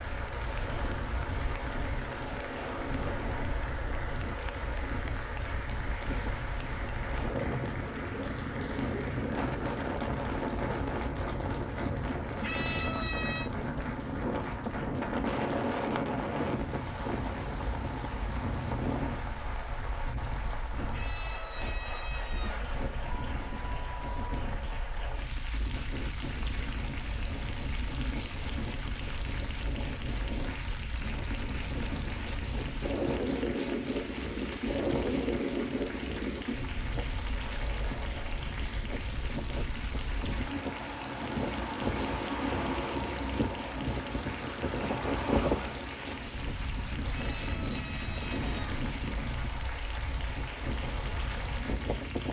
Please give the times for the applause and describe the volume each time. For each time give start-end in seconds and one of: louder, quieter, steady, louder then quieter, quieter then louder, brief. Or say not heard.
0.0-52.2 steady.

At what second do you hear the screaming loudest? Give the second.
13 s.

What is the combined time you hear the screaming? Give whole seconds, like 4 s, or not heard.
5 s.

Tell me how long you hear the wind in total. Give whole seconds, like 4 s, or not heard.
52 s.